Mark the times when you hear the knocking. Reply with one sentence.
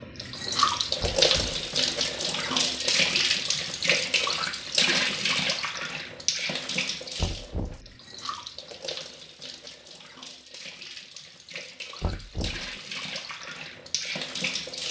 The knocking can be heard from 1.0 to 1.6 s, from 7.2 to 8.0 s and from 12.0 to 12.8 s.